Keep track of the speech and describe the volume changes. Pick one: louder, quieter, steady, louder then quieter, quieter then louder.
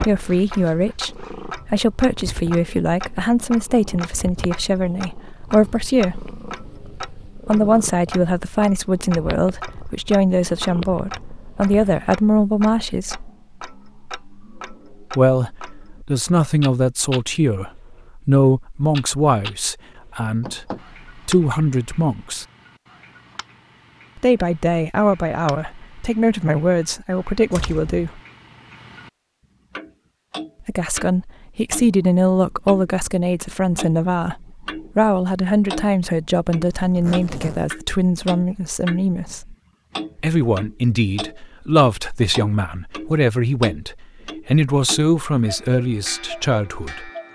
steady.